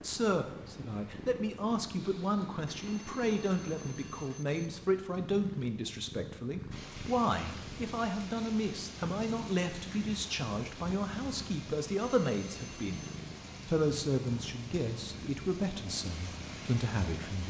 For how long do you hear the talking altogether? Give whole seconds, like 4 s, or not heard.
17 s.